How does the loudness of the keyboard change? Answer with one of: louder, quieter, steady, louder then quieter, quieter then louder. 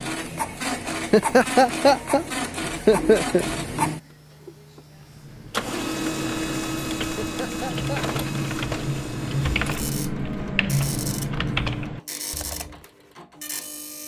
louder.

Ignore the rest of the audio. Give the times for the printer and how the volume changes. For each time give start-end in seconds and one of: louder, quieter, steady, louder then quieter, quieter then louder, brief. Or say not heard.
0.0-14.0 quieter.